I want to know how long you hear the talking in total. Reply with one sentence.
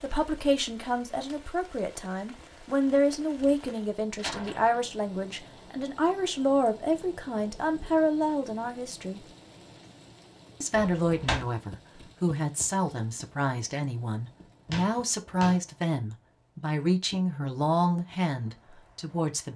You can hear the talking for 18 seconds altogether.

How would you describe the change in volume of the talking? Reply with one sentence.
The volume of the talking stays about the same.